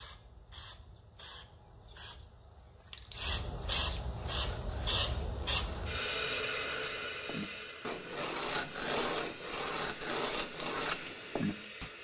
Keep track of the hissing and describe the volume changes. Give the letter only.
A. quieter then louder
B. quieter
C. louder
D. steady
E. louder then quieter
E.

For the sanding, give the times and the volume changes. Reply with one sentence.
You can hear the sanding from 4.2 to 11.9 s, getting louder.